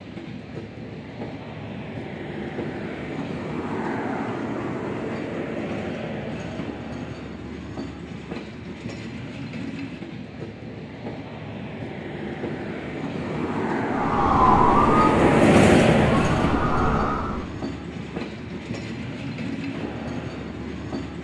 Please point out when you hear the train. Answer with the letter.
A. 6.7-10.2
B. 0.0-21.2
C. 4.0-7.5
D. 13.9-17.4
B.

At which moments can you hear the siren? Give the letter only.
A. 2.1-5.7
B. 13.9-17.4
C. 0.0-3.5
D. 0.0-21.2
B.